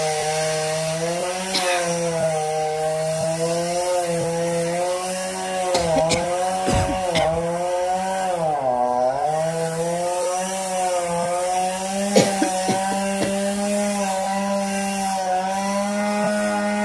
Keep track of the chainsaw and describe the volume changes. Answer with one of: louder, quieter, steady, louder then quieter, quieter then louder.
steady.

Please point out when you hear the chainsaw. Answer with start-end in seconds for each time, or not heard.
0.0-16.7.